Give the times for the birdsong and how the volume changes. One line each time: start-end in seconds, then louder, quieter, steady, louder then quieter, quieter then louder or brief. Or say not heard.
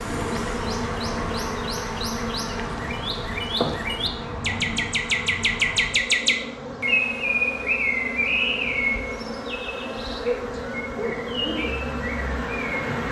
0.1-12.8 louder then quieter.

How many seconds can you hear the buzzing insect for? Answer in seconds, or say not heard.
13 s.